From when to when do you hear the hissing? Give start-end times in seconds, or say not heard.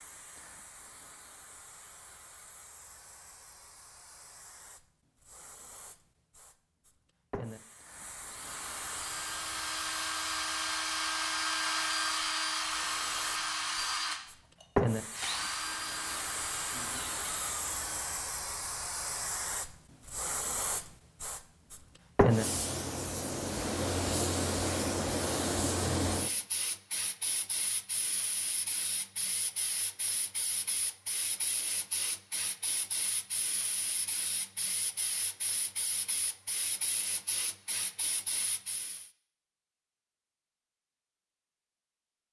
0.0-39.1.